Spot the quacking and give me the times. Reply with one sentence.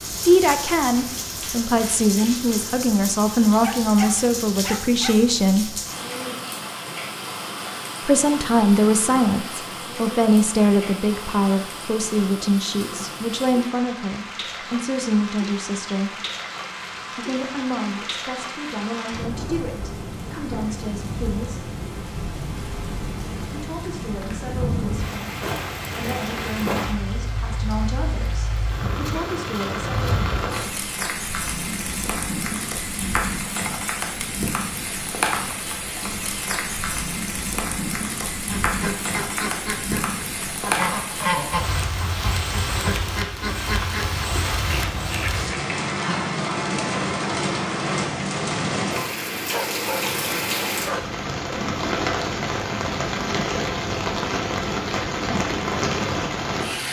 The quacking can be heard from 38.0 to 45.5 s.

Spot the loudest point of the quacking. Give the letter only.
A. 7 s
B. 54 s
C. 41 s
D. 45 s
C.